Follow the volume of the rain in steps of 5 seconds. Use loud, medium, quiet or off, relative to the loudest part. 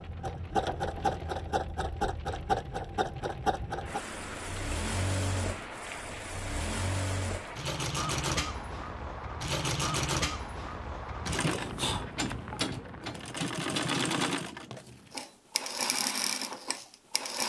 loud, loud, loud, off.